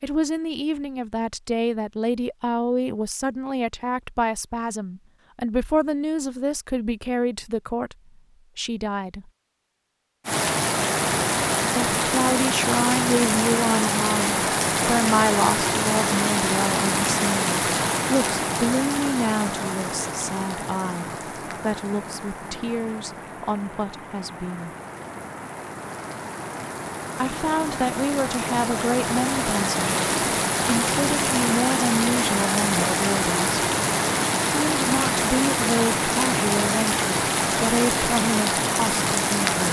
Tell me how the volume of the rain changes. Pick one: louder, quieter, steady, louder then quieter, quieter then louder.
quieter then louder.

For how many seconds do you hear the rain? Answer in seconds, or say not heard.
29 s.